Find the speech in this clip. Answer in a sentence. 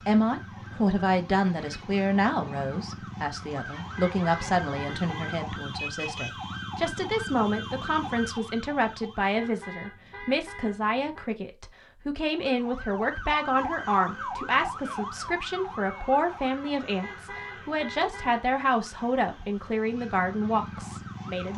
You can hear the speech from 0.1 to 21.5 s.